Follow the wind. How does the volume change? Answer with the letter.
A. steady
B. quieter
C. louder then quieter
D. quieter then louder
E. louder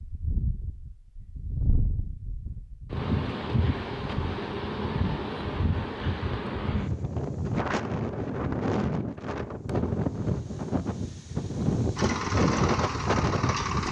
E.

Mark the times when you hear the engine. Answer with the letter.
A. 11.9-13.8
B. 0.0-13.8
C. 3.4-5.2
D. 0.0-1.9
A.